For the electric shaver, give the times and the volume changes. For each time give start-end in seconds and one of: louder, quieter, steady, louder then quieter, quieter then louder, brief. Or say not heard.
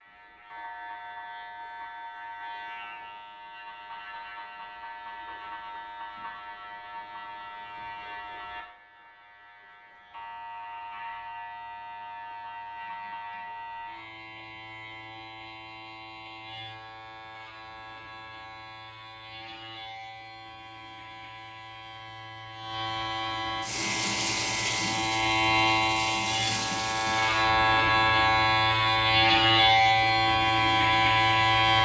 0.0-31.8 louder.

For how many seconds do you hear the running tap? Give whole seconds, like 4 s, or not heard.
4 s.